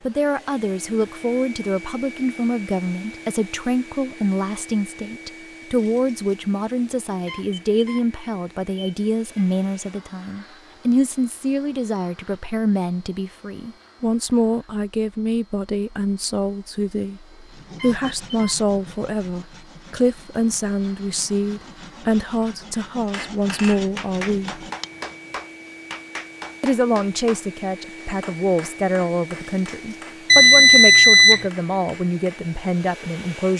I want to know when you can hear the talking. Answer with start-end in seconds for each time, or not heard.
0.1-24.6, 26.6-33.5.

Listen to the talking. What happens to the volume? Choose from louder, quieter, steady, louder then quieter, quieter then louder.
steady.